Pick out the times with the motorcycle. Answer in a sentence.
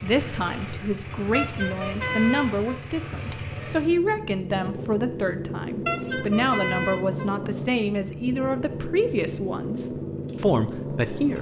You can hear the motorcycle from 0.0 to 11.3 s.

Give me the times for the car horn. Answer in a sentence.
The car horn can be heard from 1.3 to 2.8 s and from 5.8 to 7.3 s.